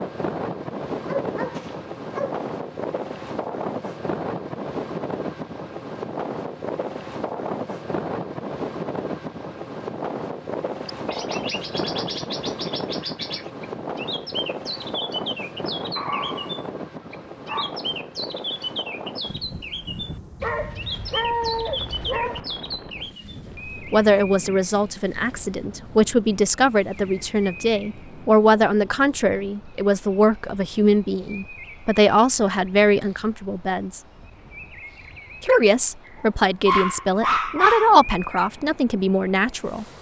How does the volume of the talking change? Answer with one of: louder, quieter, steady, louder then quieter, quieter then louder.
steady.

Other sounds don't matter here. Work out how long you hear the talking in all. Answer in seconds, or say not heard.
15 s.